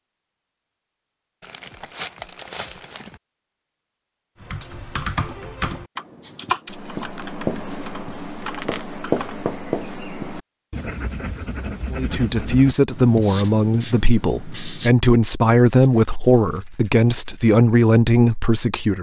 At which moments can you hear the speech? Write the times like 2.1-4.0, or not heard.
11.9-18.9.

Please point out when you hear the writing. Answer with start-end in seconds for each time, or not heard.
6.2-14.9.